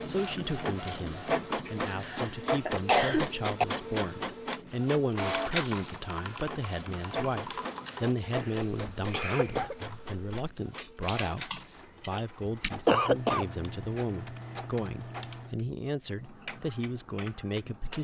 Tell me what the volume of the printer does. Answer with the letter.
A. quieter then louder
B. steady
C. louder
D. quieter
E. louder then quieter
D.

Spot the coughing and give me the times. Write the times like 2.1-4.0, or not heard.
1.6-3.6, 8.3-9.8, 12.8-13.4.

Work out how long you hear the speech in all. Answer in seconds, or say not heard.
18 s.